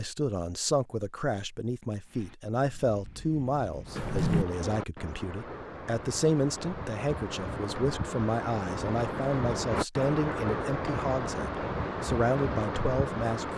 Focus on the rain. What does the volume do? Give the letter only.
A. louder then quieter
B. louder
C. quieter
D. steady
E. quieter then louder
B.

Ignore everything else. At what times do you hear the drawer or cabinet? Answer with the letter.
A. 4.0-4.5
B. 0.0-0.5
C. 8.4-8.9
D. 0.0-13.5
A.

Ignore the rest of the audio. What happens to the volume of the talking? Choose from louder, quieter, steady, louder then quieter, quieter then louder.
steady.